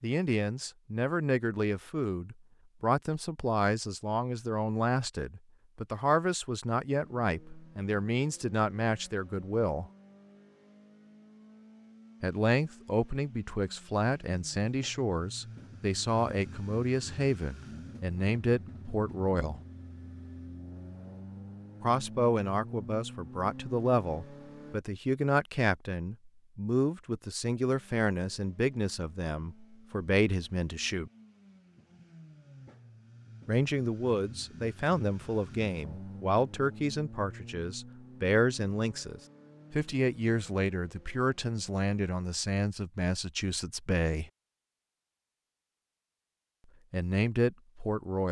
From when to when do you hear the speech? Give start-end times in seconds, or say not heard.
0.0-9.9, 12.2-19.6, 21.8-31.1, 33.5-44.3, 46.9-48.2.